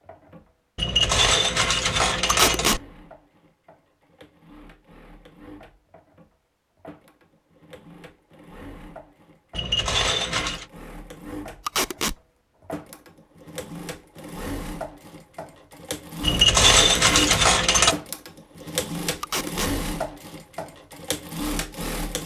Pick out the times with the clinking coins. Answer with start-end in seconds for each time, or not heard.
0.8-2.8, 9.5-10.7, 16.2-17.9.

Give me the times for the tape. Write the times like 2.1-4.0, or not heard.
2.3-2.8, 11.7-12.2, 19.2-19.8.